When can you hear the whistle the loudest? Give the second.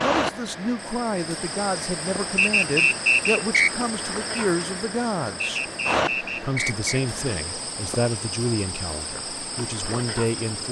3 s.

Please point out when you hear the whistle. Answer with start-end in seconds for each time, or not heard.
2.4-3.7, 5.4-7.0.